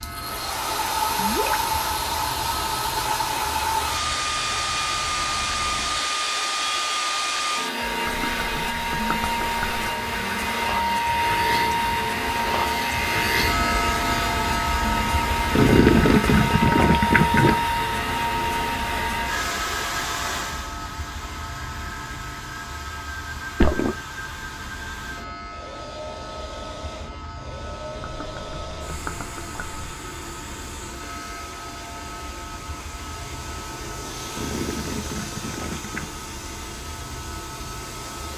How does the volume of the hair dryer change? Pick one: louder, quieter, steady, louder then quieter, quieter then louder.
quieter.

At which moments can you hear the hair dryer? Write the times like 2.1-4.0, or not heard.
0.0-38.3.